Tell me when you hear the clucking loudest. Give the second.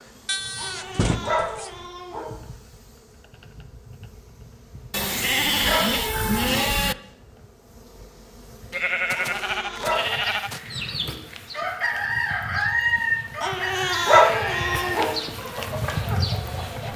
13 s.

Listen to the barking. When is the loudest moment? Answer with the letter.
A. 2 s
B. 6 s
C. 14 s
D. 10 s
C.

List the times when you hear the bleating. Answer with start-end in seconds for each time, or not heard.
0.2-1.9, 4.9-7.0, 8.7-10.6, 14.2-15.1.